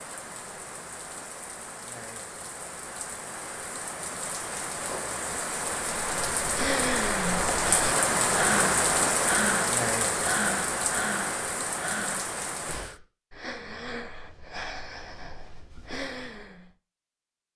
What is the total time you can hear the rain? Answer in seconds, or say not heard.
13 s.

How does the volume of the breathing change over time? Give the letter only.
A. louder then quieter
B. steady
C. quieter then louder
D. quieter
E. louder
D.